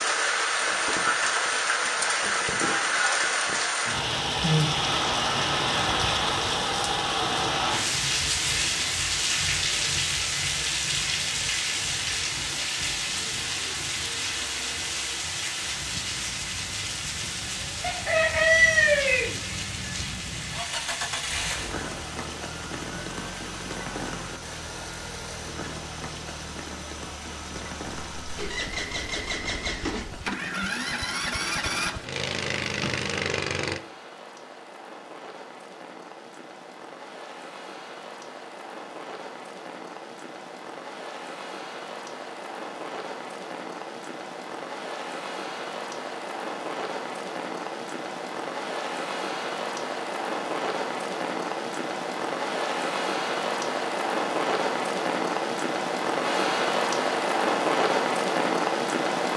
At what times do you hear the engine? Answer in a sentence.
The engine can be heard from 15.6 to 33.8 s.